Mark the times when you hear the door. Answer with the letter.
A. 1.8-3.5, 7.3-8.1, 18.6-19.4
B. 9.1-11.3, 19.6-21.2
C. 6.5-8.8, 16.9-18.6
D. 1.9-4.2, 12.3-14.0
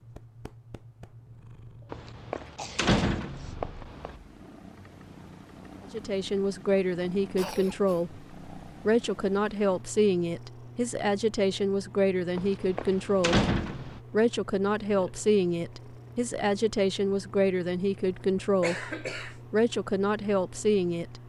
D.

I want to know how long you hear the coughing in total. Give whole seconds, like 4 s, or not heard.
3 s.